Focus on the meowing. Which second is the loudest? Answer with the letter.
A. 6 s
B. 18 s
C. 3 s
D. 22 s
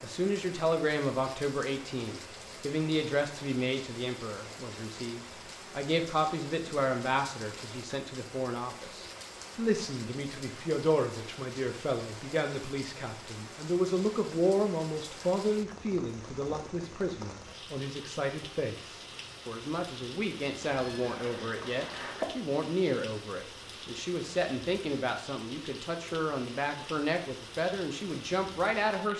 D.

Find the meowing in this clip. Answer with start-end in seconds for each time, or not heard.
20.6-22.2.